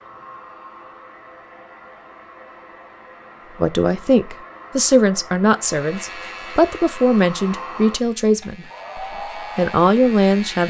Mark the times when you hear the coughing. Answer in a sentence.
The coughing can't be heard in this clip.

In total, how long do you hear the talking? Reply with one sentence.
You can hear the talking for 7 seconds altogether.